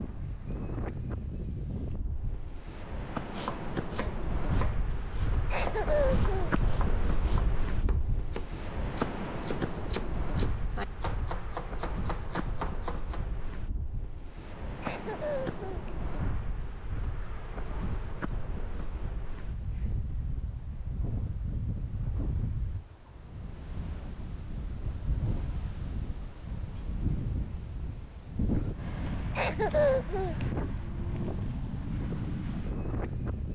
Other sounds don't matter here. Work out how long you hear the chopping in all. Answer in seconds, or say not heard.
10 s.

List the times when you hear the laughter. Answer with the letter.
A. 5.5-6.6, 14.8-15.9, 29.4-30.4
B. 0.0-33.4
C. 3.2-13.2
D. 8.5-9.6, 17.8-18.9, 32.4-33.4
A.